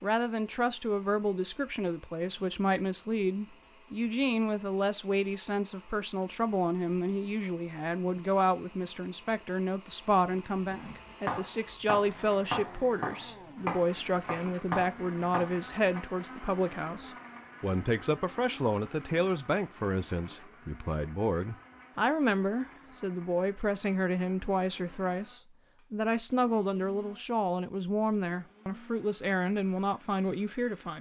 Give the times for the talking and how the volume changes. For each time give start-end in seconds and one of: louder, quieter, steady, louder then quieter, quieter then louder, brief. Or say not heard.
0.0-30.9 steady.